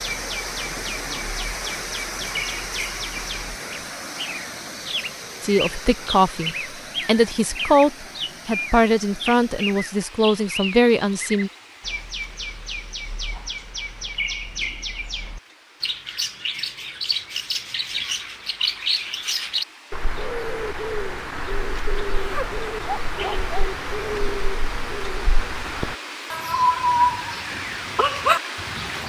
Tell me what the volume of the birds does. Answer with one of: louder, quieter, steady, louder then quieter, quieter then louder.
louder.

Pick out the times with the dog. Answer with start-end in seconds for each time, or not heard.
22.3-23.7.